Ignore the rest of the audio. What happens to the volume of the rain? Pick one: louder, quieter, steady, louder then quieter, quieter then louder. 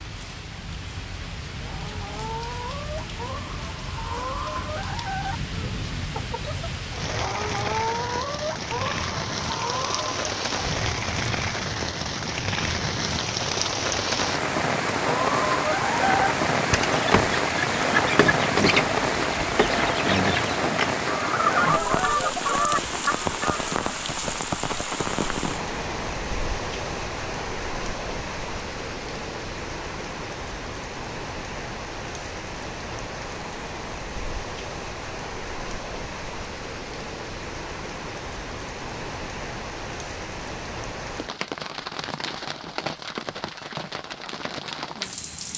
louder then quieter.